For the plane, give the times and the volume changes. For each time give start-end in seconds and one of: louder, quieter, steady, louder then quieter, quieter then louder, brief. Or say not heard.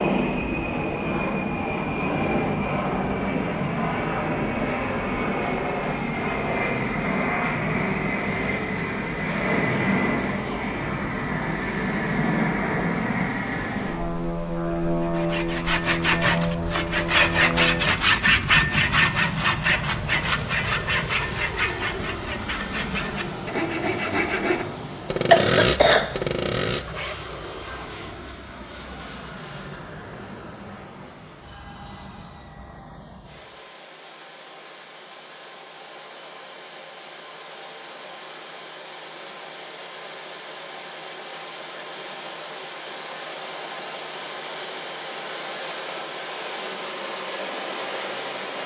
0.0-48.6 quieter then louder.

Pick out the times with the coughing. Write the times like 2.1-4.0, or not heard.
25.3-26.1.